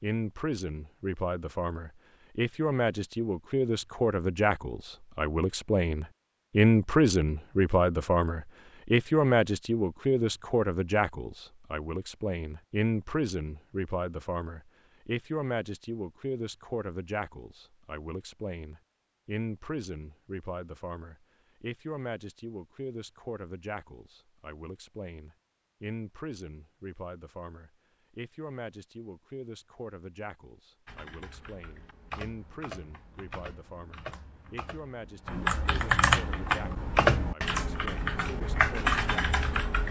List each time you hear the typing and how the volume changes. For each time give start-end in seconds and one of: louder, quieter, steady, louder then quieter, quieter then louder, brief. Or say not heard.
30.9-39.8 louder.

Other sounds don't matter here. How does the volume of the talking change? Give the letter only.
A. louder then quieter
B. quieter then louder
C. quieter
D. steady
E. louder
C.